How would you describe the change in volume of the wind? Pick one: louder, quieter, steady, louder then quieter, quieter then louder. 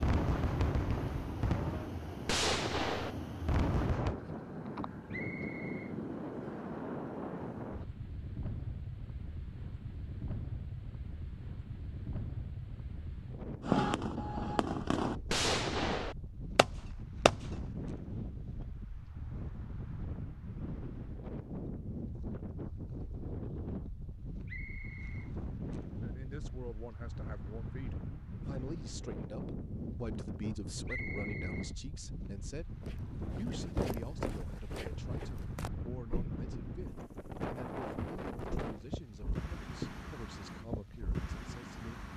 steady.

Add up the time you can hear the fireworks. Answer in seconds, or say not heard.
8 s.